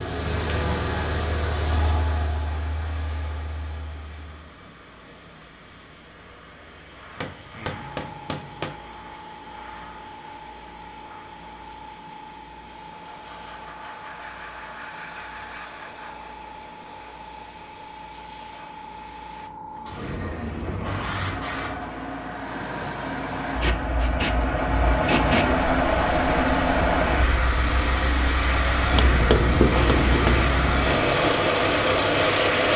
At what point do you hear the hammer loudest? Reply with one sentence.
The volume of the hammer peaks at 29 seconds.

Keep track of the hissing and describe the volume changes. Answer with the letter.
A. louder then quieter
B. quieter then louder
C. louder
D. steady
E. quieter
C.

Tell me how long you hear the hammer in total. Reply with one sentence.
You can hear the hammer for 3 seconds altogether.